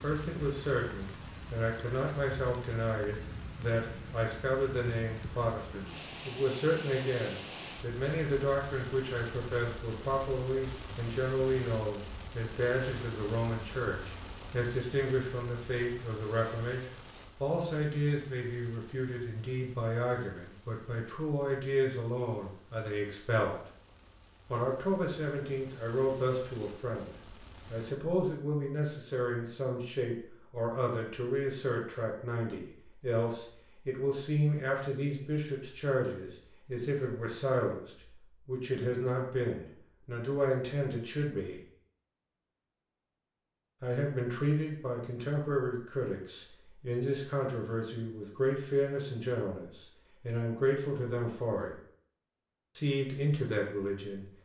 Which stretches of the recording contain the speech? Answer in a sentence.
The speech can be heard from 0.0 to 23.7 s, from 24.5 to 41.6 s, from 43.8 to 51.8 s and from 52.8 to 54.4 s.